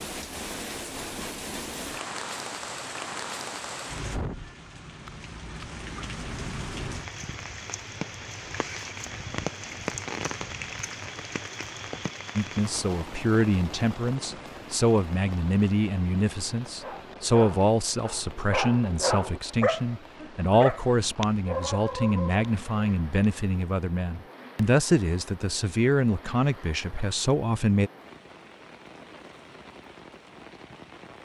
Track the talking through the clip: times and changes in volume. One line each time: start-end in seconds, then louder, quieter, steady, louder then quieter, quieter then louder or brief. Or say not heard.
12.3-27.9 steady.